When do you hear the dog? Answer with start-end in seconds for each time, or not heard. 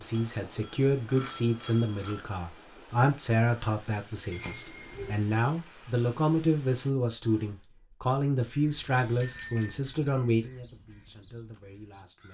not heard.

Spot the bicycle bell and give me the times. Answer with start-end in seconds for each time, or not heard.
0.1-2.2, 4.3-5.2, 9.2-9.8.